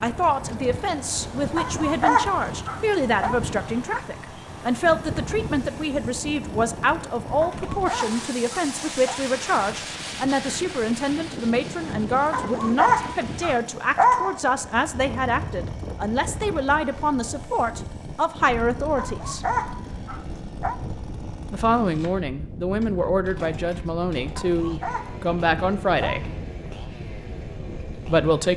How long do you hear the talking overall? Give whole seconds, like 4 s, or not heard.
25 s.